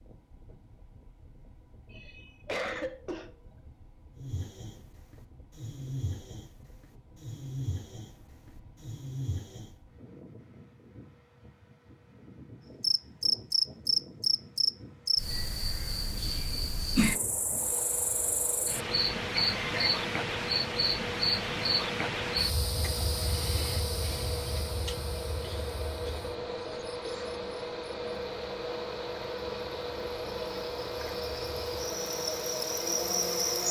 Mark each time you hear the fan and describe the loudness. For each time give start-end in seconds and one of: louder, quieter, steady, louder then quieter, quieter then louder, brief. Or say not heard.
0.0-33.6 louder.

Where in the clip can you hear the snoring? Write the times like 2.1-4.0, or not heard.
4.2-9.7.